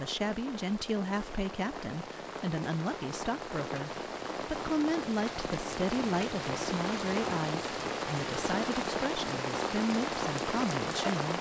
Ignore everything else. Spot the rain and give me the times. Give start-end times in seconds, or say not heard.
0.0-11.3.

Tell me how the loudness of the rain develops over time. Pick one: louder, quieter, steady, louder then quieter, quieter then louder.
louder.